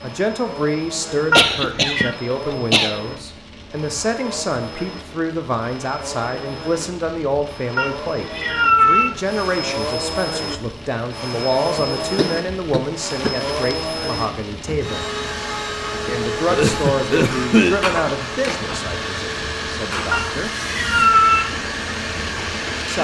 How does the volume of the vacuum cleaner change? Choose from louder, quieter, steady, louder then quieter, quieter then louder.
louder.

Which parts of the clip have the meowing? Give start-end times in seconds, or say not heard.
1.3-2.1, 7.8-9.2, 20.1-21.6.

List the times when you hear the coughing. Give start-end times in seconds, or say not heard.
1.4-3.0, 12.0-13.5, 16.4-17.8.